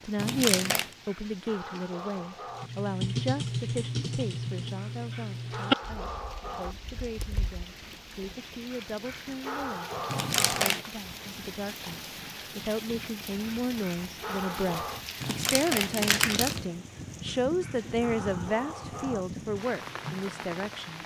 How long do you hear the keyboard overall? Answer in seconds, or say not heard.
6 s.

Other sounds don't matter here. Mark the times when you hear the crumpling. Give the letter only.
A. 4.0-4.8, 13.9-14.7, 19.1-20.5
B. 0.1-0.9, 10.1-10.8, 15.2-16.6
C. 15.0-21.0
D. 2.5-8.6
B.